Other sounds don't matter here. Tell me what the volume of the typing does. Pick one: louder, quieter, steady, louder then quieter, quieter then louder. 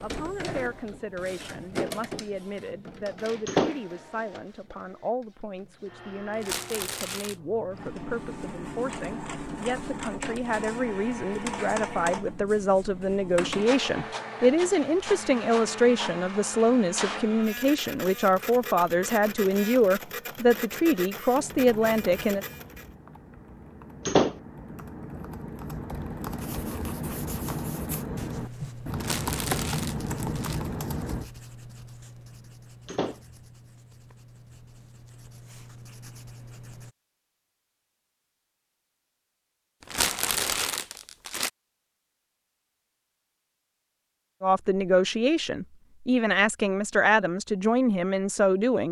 louder.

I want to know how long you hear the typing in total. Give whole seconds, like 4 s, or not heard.
10 s.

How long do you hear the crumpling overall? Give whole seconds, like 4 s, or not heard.
4 s.